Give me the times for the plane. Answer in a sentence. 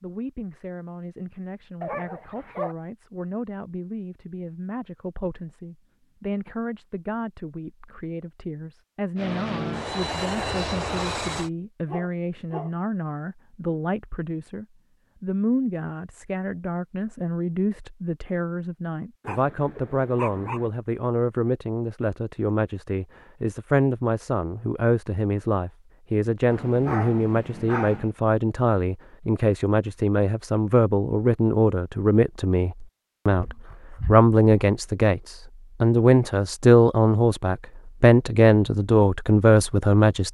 You can hear the plane from 9.2 to 11.5 s.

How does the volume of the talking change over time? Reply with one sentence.
The loudness of the talking goes up.